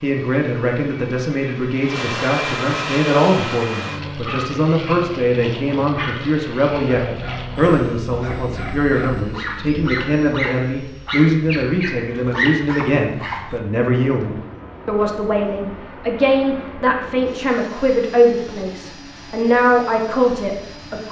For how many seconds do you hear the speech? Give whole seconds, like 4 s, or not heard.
21 s.